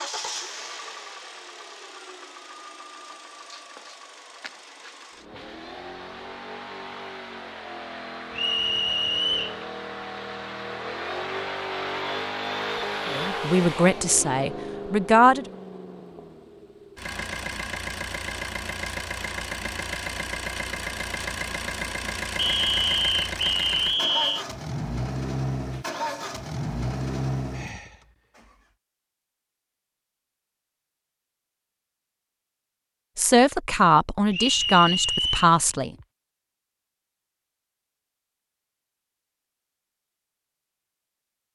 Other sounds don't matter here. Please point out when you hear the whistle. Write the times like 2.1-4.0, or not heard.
8.3-9.6, 22.4-24.4, 34.3-35.5.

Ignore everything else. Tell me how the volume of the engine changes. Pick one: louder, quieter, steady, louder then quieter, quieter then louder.
louder.